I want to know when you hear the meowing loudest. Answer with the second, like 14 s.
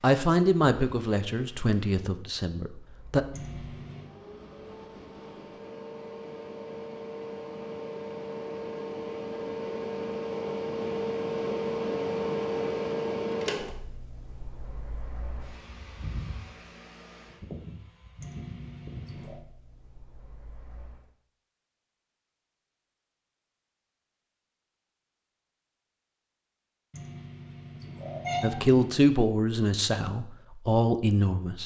28 s.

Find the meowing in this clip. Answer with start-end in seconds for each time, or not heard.
3.3-4.1, 18.2-19.4, 26.9-29.0.